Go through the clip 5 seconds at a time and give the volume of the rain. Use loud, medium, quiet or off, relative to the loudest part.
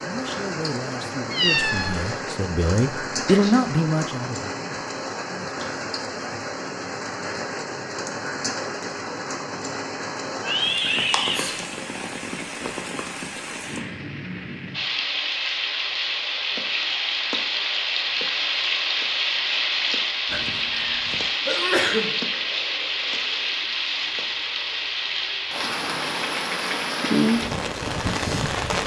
medium, medium, medium, loud, loud, loud.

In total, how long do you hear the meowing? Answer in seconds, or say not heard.
3 s.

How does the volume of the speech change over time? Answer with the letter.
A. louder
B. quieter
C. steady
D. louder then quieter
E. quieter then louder
D.